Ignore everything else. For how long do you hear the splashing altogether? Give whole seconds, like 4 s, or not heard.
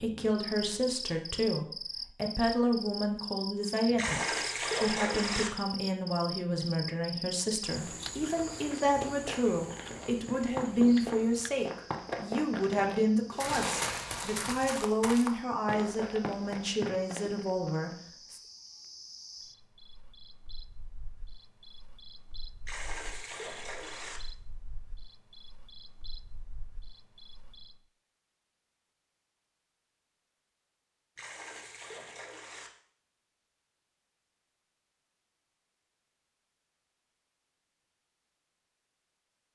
6 s.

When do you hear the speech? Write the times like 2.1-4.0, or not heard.
0.0-18.4.